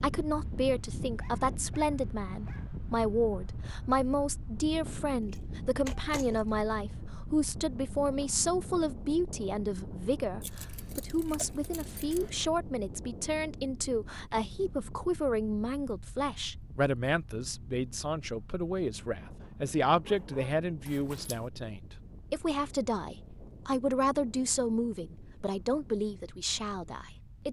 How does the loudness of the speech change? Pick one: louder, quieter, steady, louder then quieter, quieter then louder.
steady.